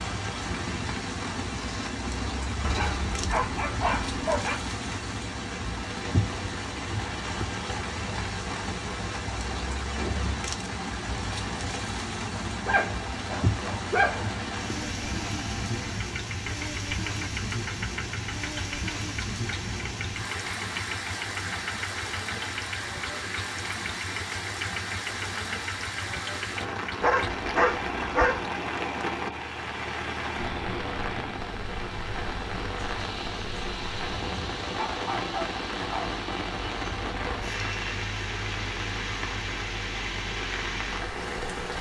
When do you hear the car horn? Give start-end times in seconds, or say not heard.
not heard.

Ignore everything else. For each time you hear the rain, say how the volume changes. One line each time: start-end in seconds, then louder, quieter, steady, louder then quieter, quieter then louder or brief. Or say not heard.
0.0-41.7 steady.